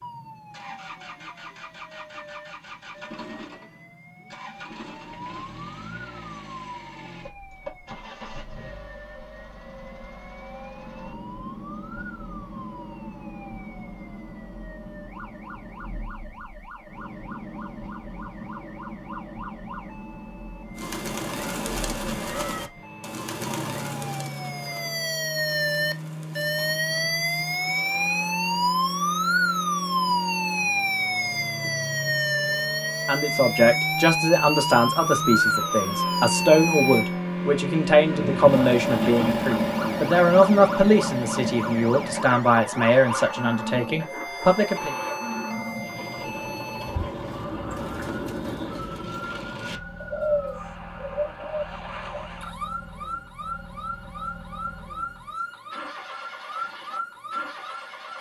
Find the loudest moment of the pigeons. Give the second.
50 s.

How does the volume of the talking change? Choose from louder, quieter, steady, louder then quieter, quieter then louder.
steady.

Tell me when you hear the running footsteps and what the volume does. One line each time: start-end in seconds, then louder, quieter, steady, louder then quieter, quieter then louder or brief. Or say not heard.
not heard.